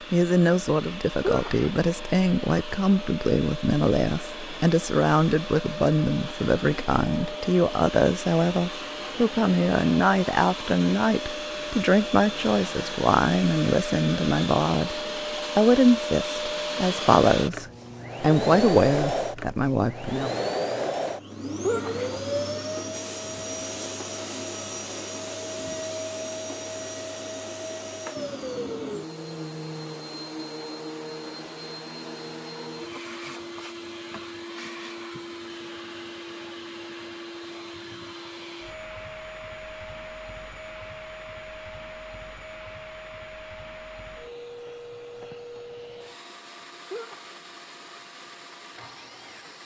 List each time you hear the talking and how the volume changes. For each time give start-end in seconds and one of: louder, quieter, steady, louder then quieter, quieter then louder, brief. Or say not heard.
0.1-20.4 steady.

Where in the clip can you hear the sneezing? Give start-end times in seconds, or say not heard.
1.2-1.7, 21.6-22.1, 46.9-47.4.